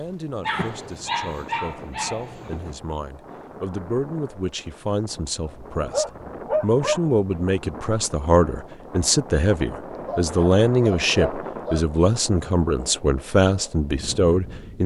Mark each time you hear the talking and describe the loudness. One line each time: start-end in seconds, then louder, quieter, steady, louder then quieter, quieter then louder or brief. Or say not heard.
0.0-14.8 louder.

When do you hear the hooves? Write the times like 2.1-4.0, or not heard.
not heard.